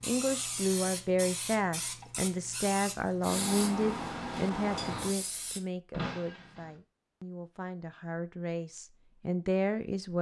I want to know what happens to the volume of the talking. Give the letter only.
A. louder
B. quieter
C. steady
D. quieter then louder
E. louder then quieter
D.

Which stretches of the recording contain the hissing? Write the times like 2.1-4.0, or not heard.
0.0-5.6.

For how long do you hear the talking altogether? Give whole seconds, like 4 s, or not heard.
10 s.